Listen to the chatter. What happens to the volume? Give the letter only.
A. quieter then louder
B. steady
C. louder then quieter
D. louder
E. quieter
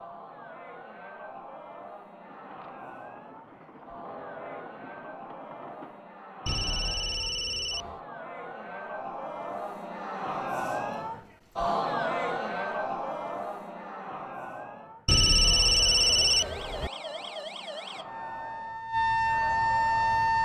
C.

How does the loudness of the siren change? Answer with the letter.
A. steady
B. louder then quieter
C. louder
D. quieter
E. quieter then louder
C.